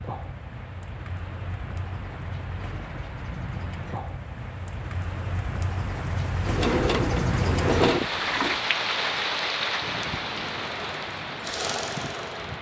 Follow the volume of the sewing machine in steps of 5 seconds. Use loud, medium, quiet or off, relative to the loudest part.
off, loud, medium.